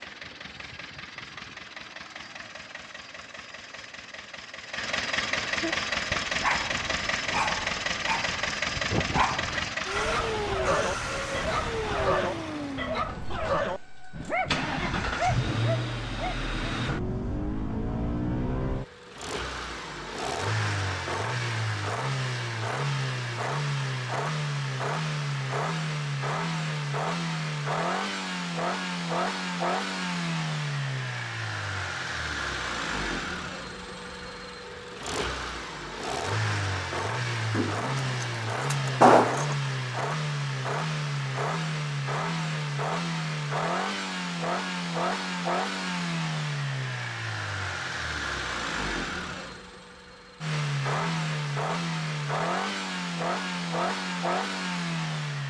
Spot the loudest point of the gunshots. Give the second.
39 s.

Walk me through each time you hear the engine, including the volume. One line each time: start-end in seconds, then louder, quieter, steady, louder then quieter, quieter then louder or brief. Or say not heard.
0.0-55.4 steady.